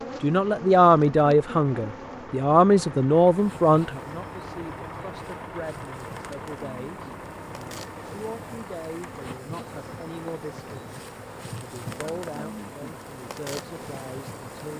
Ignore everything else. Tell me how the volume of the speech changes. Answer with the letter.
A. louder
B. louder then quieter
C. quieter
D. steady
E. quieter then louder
C.